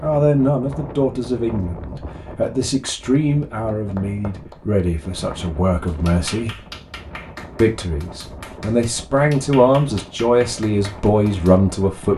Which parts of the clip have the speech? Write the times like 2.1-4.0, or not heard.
0.0-6.6, 7.6-12.1.